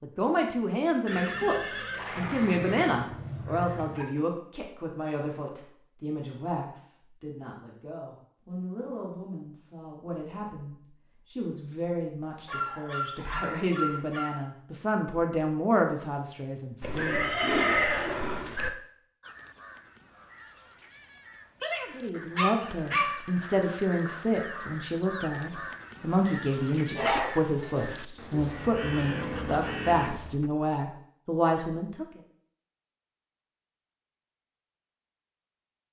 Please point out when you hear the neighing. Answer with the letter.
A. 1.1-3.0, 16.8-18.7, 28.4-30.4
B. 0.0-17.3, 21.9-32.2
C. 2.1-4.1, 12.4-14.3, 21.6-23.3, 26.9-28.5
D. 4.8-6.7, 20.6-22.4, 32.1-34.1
A.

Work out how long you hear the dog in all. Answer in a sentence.
You can hear the dog for 7 seconds altogether.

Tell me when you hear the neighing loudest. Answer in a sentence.
The volume of the neighing peaks at 18 seconds.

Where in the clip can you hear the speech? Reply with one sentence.
You can hear the speech from 0.0 to 17.3 s and from 21.9 to 32.2 s.